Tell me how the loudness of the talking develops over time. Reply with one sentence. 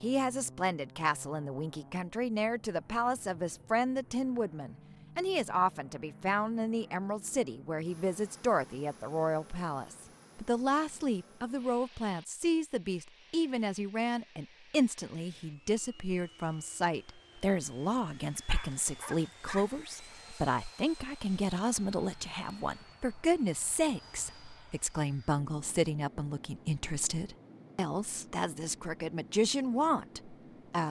The volume of the talking stays about the same.